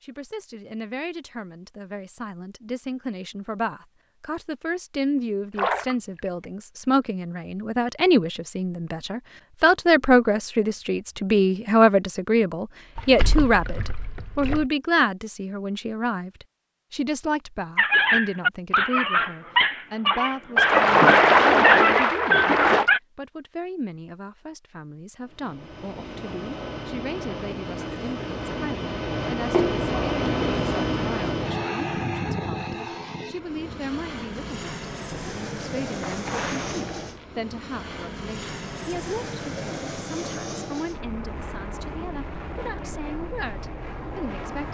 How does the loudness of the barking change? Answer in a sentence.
The volume of the barking stays about the same.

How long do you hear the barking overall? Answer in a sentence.
You can hear the barking for 5 seconds altogether.